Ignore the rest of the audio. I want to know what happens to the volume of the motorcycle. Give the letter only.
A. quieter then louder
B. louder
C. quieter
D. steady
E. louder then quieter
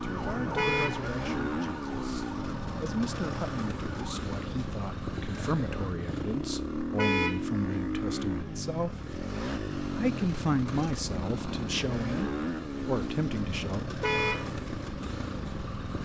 D.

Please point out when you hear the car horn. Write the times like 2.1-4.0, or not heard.
0.6-1.0, 7.0-7.5, 14.0-14.5.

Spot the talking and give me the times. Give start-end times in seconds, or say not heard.
0.0-8.9, 9.9-13.8.